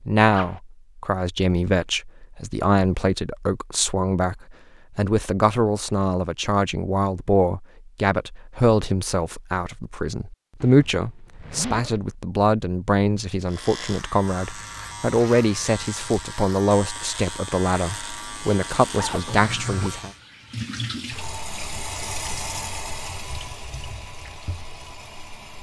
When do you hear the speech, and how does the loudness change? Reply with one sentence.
You can hear the speech from 0.0 to 20.1 s, at a steady volume.